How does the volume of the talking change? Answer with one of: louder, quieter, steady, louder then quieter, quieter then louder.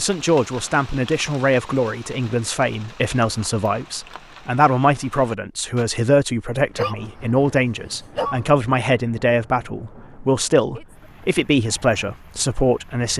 steady.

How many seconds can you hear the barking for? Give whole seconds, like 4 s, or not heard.
2 s.